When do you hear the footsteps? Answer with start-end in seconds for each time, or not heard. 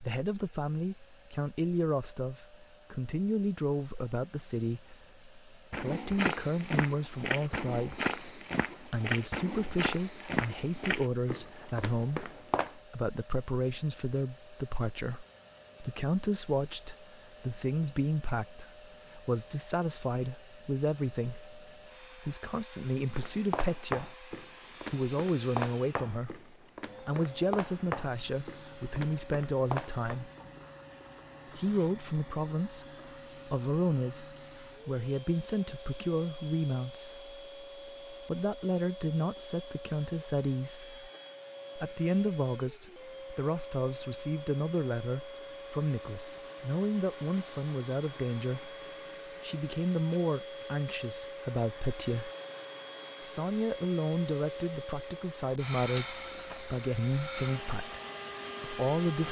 5.7-12.8, 23.1-30.2.